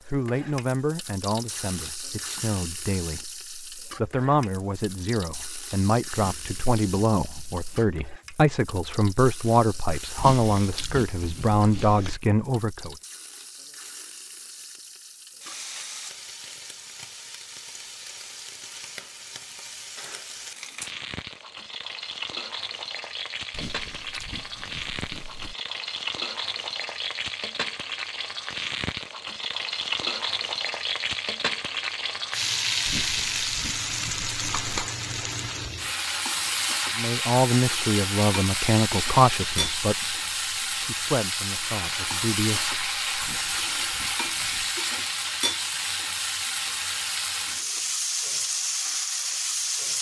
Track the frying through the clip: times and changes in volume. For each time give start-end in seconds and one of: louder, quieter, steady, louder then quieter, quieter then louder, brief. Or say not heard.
0.0-49.9 louder.